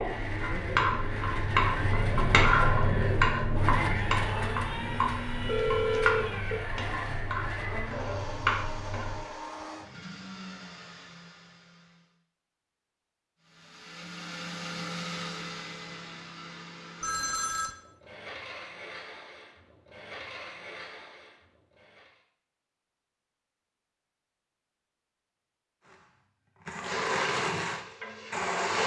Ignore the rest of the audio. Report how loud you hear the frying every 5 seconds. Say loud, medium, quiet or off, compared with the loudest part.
loud, medium, off, off, off, medium.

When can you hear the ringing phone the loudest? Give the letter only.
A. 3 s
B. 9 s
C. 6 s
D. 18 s
C.